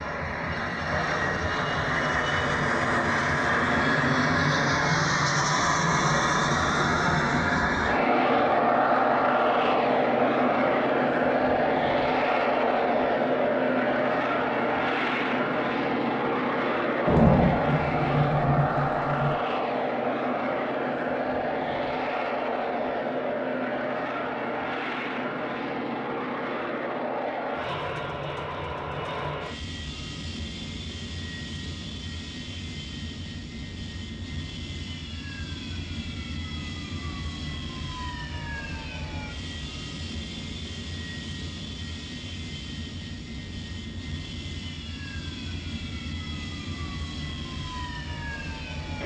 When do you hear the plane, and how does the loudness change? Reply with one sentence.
You can hear the plane from 0.0 to 49.0 s, getting quieter.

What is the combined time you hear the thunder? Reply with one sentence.
The thunder can be heard for 2 seconds in total.